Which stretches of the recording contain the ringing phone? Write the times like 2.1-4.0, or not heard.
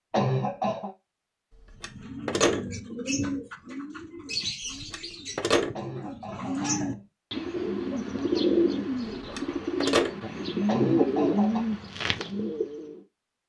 1.8-2.6, 4.9-5.7, 9.2-10.2.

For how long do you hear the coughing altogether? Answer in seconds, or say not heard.
3 s.